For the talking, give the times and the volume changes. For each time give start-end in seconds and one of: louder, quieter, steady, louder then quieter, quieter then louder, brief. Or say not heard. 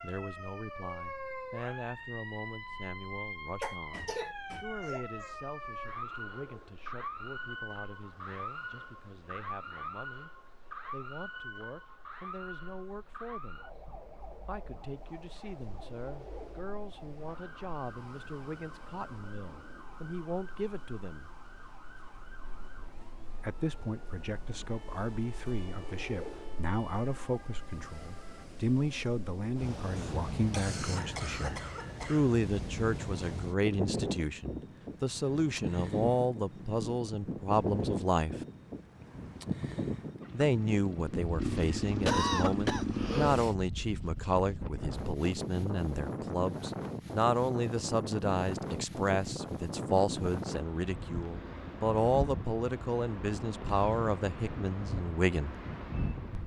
0.0-10.3 quieter
10.9-13.7 brief
14.4-21.3 louder
23.4-38.4 louder
40.3-55.5 steady.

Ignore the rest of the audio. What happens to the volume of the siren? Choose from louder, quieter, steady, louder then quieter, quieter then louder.
quieter.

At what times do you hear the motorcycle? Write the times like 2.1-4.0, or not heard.
40.2-43.5.